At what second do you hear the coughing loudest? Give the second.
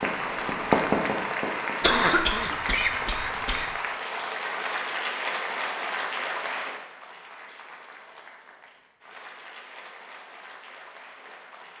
2 s.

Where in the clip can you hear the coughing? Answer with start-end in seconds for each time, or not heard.
1.8-3.7.